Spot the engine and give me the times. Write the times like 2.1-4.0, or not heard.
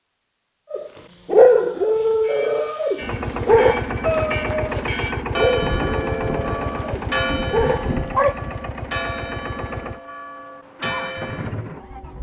3.0-12.1.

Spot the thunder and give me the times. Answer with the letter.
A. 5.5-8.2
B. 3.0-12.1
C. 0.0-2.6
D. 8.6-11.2
A.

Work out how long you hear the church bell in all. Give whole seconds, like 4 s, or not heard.
9 s.